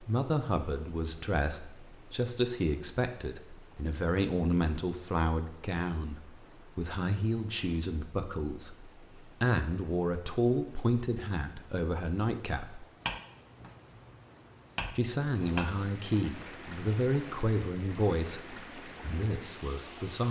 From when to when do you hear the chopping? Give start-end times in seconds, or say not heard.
13.0-15.7.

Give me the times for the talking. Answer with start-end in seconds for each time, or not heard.
0.0-12.8, 14.9-20.2.